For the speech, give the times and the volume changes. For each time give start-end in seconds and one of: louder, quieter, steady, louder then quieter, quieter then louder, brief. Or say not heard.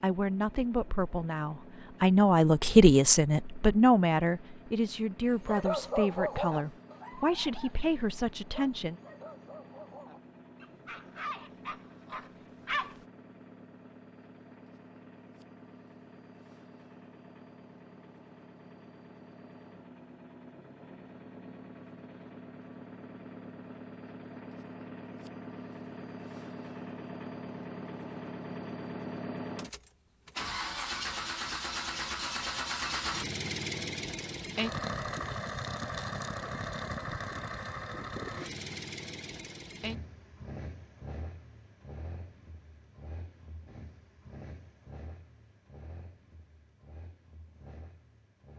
0.0-8.9 louder then quieter.